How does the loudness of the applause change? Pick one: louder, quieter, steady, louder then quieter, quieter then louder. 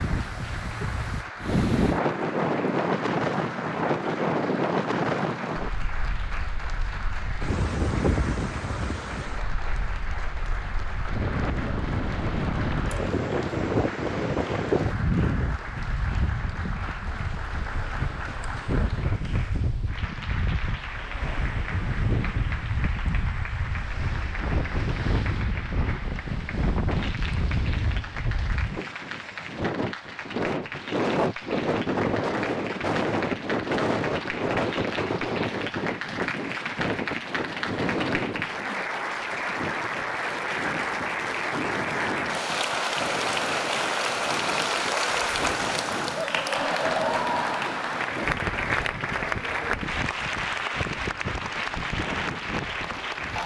louder.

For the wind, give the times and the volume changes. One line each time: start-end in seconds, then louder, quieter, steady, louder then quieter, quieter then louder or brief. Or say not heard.
0.0-53.4 quieter.